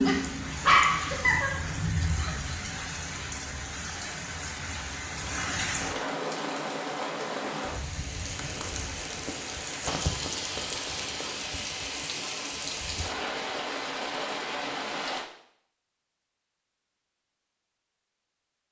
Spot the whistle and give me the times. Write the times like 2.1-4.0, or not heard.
not heard.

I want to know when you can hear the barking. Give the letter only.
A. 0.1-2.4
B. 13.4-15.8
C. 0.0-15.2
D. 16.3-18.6
A.